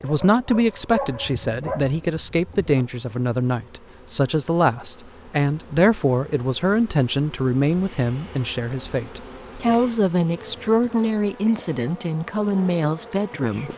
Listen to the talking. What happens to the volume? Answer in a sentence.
The loudness of the talking stays about the same.